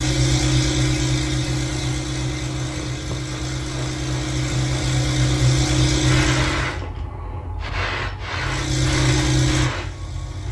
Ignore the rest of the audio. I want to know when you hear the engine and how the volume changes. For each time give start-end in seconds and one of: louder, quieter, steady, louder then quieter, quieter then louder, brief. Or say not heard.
0.0-6.8 quieter then louder
8.3-10.4 brief.